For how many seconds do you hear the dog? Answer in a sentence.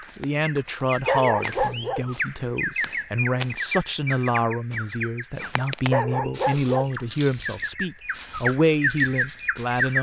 The dog can be heard for 2 seconds in total.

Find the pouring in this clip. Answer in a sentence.
You can't hear the pouring here.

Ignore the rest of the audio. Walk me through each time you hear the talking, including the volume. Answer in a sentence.
You can hear the talking from 0.1 to 9.9 s, at a steady volume.